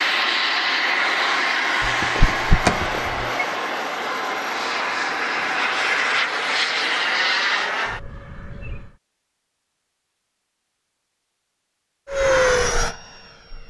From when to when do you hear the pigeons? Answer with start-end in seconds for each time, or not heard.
not heard.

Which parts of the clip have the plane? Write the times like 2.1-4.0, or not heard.
0.0-8.9, 12.1-13.6.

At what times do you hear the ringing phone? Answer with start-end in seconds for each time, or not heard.
1.8-3.5.